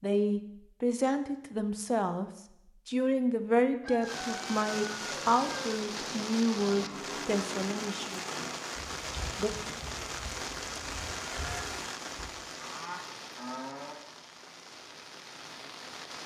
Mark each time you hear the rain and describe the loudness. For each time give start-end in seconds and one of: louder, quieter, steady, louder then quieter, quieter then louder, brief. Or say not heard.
4.0-16.2 quieter.